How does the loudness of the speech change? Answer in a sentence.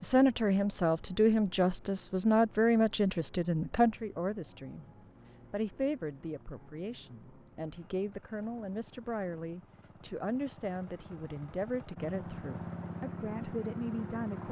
The volume of the speech goes down.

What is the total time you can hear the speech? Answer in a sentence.
The speech can be heard for 14 seconds in total.